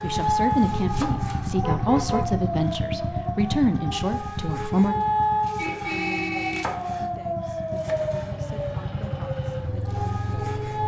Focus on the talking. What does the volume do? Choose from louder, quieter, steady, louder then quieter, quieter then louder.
quieter.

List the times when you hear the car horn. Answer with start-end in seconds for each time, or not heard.
0.7-2.5, 5.5-6.7.